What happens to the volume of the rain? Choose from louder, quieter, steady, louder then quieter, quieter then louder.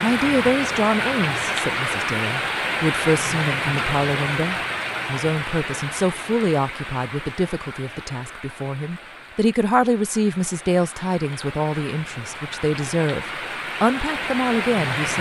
quieter then louder.